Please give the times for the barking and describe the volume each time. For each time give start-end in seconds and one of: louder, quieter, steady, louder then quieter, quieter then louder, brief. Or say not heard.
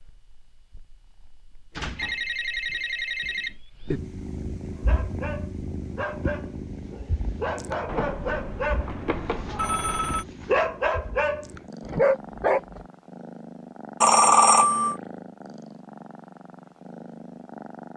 4.8-12.8 louder.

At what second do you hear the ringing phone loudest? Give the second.
14 s.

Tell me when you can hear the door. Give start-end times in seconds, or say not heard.
1.7-3.5.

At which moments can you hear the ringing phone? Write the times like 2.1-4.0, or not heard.
1.9-4.0, 7.8-10.2, 14.0-14.9.